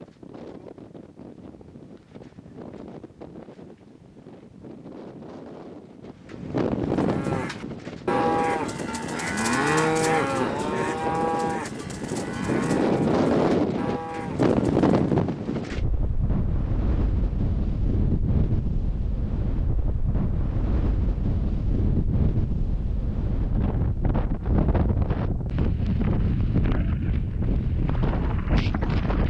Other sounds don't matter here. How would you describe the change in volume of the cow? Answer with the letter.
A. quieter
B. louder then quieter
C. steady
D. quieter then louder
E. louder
A.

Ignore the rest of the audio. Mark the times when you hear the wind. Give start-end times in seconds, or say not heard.
0.0-29.2.